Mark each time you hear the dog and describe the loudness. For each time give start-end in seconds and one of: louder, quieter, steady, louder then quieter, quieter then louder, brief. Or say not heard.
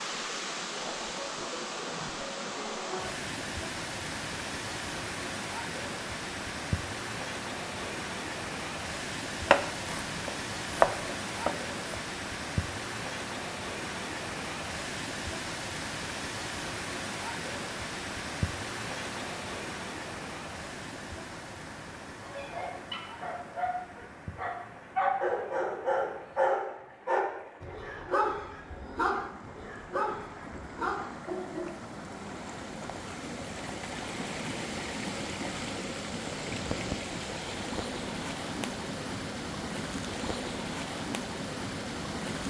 22.2-31.8 louder then quieter.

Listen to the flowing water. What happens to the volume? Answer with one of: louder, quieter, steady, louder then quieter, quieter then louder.
quieter then louder.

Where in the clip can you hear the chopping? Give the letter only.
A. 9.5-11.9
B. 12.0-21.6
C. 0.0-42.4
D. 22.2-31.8
A.